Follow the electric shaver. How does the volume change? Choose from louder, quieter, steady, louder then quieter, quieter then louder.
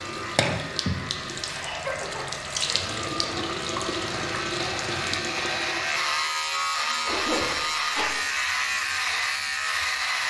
louder.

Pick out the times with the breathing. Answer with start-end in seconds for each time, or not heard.
not heard.